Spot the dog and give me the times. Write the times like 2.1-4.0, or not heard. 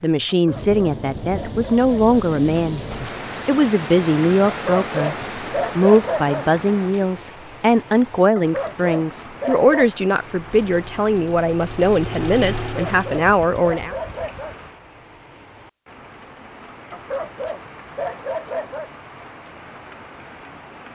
0.2-2.1, 4.5-6.5, 8.3-9.9, 12.6-14.6, 16.9-18.9.